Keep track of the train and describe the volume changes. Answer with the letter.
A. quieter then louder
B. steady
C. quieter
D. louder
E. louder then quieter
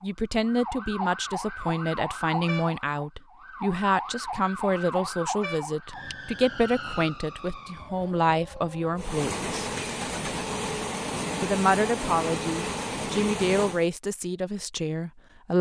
B.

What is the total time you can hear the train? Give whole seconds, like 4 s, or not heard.
5 s.